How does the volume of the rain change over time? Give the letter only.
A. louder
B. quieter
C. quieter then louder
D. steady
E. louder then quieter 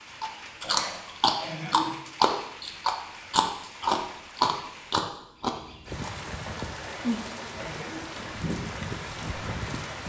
A.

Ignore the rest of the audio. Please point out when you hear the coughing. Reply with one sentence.
The coughing can be heard from 0.6 to 2.0 s and from 6.8 to 8.2 s.